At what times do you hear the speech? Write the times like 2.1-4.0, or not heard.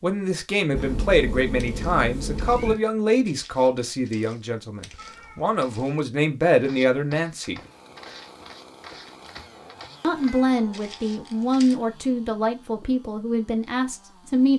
0.0-7.6, 10.0-14.5.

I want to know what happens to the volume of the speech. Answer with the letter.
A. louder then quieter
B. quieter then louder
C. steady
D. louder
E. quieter
C.